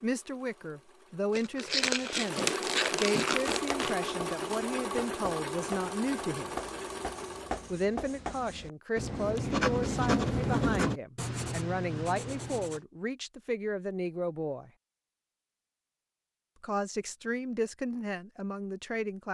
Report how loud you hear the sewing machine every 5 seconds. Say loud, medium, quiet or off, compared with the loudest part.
loud, loud, off, off.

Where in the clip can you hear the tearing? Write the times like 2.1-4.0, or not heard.
1.3-4.0.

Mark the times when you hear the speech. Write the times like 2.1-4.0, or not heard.
0.0-6.5, 7.7-14.7, 16.6-19.2.